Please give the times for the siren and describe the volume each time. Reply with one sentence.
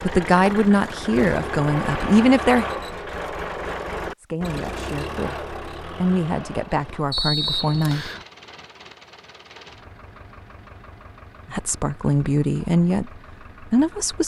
The siren can't be heard in this clip.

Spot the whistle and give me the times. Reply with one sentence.
The whistle can be heard from 7.1 to 8.2 s.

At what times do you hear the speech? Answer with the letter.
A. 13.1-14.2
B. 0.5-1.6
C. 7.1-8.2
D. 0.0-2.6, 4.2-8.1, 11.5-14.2
D.